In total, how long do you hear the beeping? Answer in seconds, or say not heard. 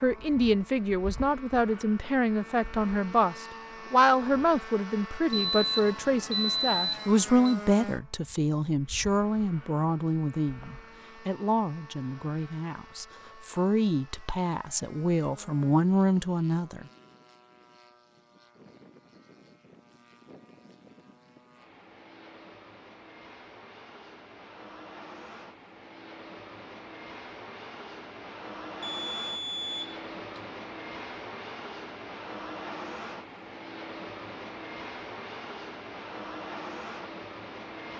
4 s.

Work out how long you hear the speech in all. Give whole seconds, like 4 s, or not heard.
17 s.